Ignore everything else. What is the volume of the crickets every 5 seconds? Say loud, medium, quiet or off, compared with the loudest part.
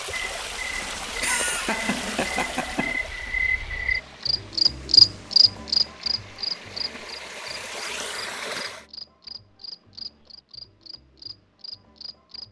loud, loud, quiet.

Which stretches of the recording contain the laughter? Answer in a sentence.
The laughter can be heard from 1.1 to 3.0 s.